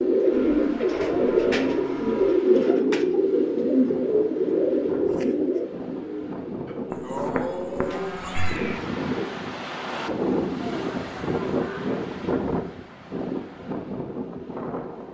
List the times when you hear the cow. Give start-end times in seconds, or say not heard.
0.3-2.4, 6.7-8.6, 10.7-12.1.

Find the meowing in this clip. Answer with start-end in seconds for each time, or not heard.
6.9-8.6.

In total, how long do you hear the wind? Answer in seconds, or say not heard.
15 s.